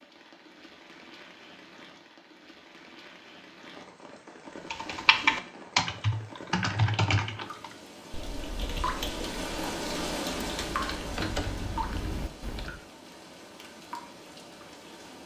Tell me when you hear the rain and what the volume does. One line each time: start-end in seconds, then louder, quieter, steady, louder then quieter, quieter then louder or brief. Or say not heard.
0.0-15.2 louder then quieter.